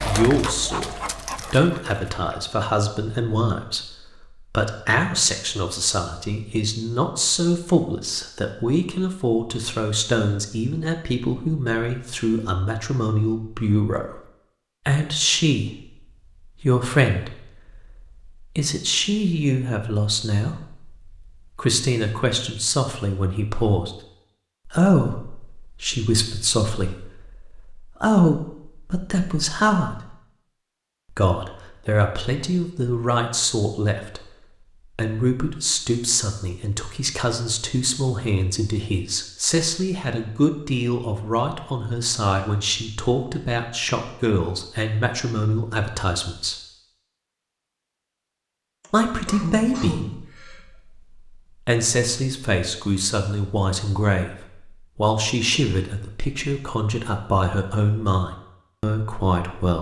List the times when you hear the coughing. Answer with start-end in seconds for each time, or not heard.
48.8-50.6.